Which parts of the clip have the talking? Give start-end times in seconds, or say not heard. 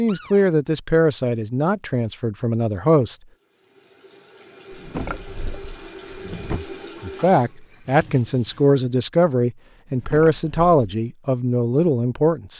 0.0-3.1, 6.5-12.5.